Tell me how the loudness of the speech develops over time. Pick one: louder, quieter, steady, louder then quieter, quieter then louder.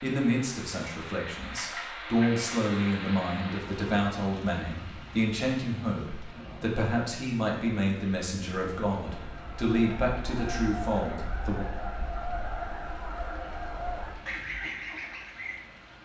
steady.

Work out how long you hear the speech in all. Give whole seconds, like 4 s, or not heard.
12 s.